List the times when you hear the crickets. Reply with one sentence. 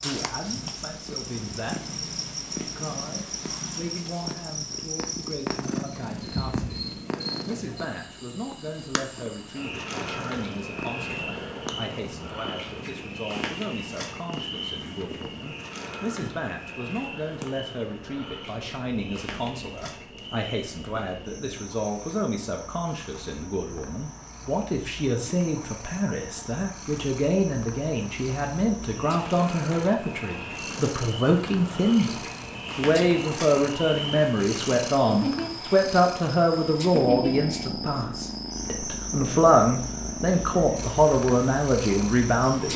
You can hear the crickets from 0.1 to 42.7 s.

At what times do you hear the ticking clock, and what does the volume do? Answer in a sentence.
You can't hear the ticking clock here.